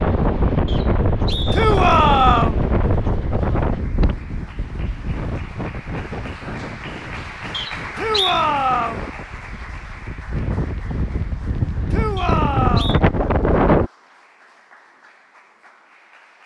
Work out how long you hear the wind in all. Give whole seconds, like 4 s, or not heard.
14 s.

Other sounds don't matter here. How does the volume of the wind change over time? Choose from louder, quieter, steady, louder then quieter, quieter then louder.
quieter then louder.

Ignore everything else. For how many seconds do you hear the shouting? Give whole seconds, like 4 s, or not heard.
3 s.